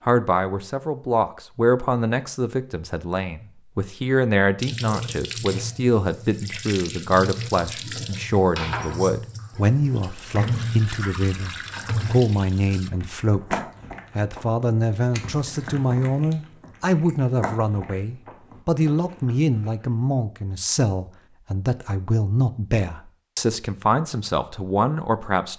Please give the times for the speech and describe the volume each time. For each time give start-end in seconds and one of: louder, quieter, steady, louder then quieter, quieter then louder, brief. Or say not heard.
0.1-25.5 steady.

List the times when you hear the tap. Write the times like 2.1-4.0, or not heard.
4.6-12.9.